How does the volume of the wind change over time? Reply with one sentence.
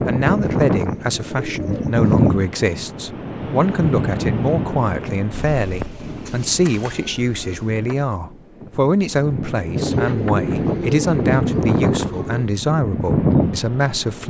The volume of the wind goes down, then up.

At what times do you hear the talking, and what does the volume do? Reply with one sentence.
The talking can be heard from 0.0 to 14.2 s, at a steady volume.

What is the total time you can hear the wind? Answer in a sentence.
The wind can be heard for 14 seconds in total.